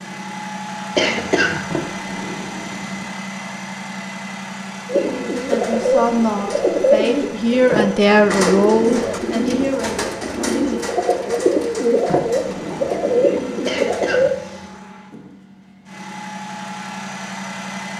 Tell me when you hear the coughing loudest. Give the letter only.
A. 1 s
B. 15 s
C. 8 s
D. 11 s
A.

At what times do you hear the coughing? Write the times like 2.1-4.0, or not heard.
0.9-1.6, 13.7-14.7.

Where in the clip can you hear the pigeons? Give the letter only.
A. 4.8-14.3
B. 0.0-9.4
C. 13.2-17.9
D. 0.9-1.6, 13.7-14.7
A.